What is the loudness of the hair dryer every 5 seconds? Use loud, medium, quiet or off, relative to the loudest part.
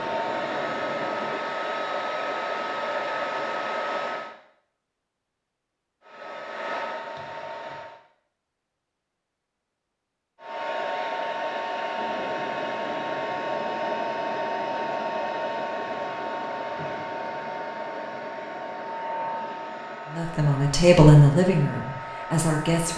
loud, medium, loud, loud, medium.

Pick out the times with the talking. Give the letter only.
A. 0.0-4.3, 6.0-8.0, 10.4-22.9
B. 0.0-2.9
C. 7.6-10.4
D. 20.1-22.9
D.